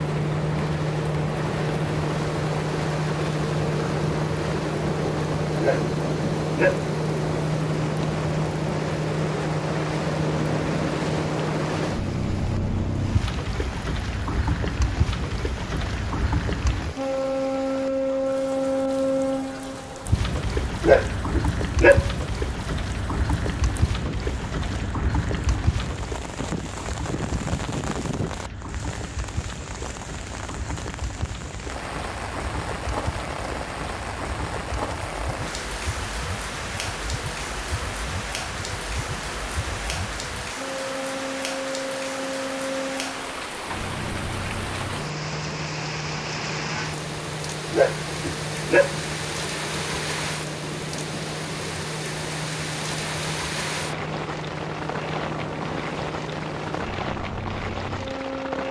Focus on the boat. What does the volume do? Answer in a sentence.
The loudness of the boat goes down.